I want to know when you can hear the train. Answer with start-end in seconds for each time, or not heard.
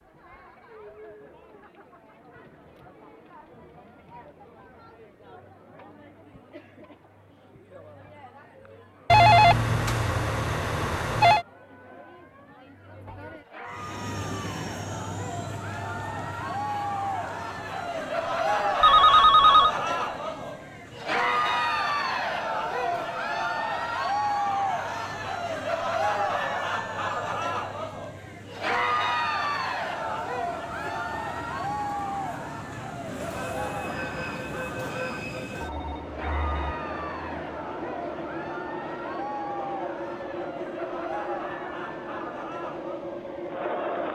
13.7-44.1.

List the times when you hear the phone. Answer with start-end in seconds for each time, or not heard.
9.1-11.4, 18.8-19.7, 35.6-36.8.